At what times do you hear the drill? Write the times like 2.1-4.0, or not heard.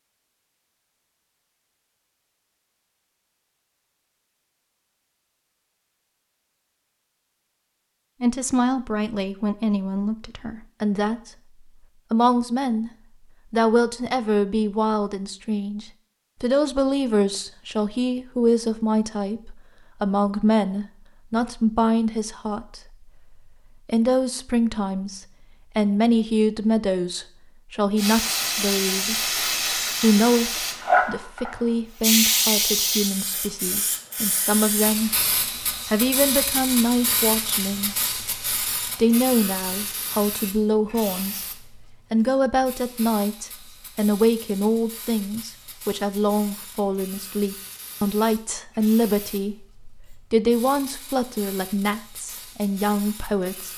not heard.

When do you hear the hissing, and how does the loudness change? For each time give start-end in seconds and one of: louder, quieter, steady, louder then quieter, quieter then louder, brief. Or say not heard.
27.9-53.7 quieter.